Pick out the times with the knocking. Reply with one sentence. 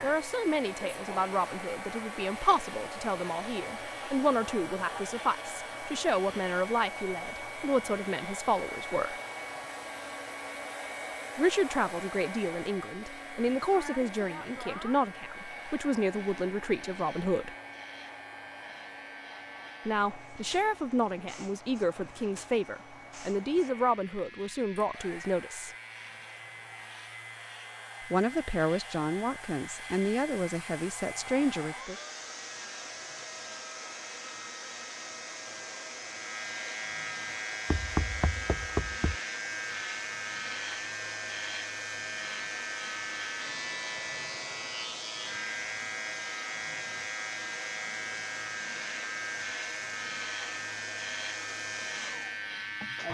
You can hear the knocking from 37.6 to 39.2 s.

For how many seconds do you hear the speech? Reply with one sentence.
The speech can be heard for 25 seconds in total.